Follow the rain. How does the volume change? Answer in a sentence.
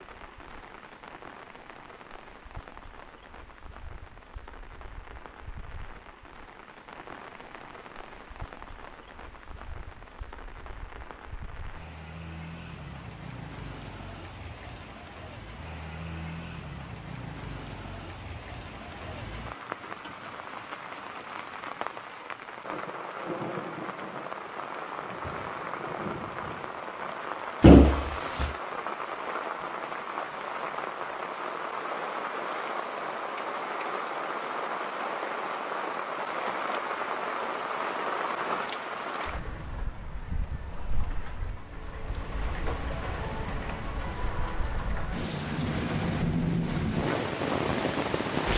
The loudness of the rain goes up.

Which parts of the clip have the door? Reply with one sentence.
You can hear the door from 27.6 to 28.5 s.